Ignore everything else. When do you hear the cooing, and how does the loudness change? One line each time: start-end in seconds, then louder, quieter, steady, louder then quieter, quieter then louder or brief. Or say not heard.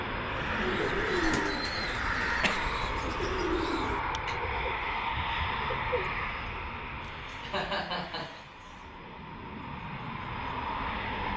0.2-6.2 quieter.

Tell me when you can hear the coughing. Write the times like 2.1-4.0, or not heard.
2.2-2.7, 7.0-8.8.